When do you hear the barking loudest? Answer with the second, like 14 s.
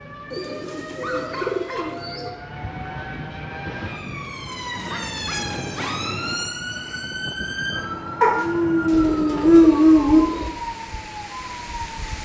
10 s.